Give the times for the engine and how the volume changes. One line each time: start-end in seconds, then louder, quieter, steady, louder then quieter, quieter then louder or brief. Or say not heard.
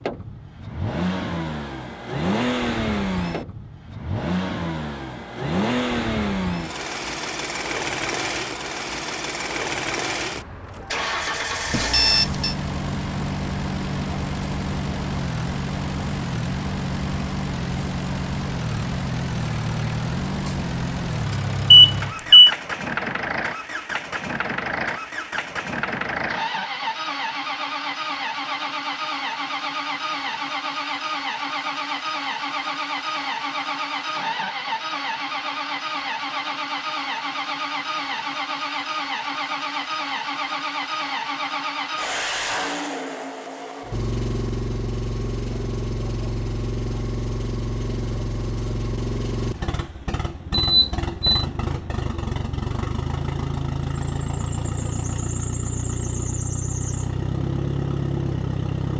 0.0-58.9 steady.